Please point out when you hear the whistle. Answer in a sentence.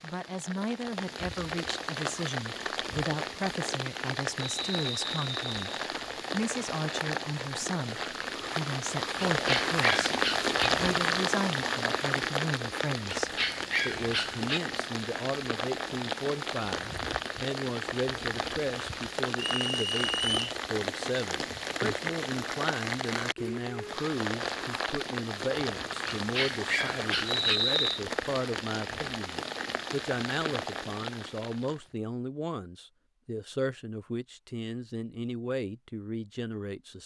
You can hear the whistle from 4.4 to 5.6 s, from 19.4 to 20.4 s and from 27.2 to 28.0 s.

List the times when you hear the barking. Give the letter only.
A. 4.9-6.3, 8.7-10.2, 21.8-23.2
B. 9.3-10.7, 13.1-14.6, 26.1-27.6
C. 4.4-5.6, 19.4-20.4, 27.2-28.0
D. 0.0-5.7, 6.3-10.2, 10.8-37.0
B.